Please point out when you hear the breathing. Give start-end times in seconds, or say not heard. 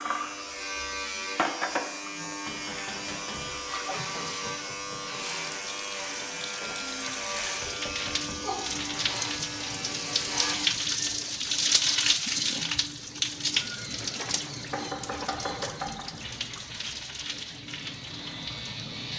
not heard.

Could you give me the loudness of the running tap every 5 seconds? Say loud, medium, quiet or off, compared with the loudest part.
medium, medium, loud, medium.